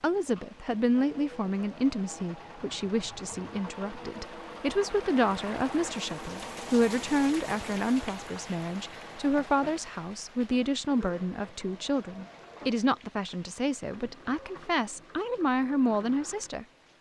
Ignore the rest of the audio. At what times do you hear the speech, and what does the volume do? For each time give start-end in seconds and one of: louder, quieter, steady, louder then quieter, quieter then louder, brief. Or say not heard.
0.0-16.6 steady.